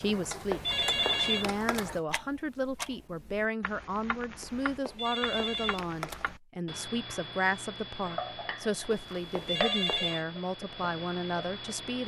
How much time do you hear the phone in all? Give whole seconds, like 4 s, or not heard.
5 s.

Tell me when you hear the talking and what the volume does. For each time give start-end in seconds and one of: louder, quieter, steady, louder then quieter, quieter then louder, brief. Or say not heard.
0.0-12.0 steady.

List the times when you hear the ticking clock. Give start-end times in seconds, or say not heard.
0.0-12.0.